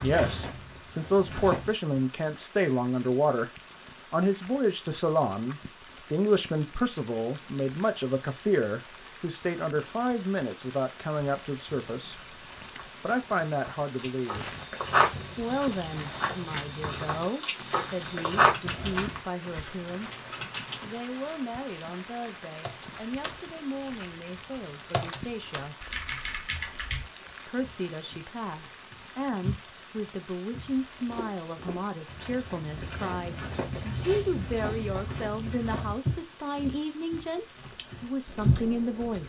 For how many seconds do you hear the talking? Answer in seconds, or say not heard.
35 s.